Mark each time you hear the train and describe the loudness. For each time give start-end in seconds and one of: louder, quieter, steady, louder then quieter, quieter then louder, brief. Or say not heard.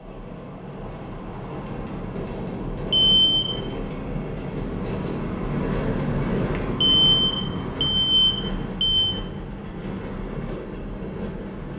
0.0-11.7 louder then quieter.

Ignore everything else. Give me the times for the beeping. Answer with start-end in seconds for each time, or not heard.
2.9-3.8, 6.8-9.2.